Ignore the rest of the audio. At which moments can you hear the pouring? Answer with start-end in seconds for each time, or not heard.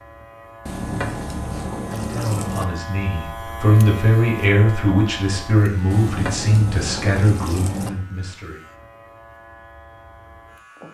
0.7-2.6, 5.9-7.9.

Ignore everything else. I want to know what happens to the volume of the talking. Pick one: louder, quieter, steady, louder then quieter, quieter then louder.
louder then quieter.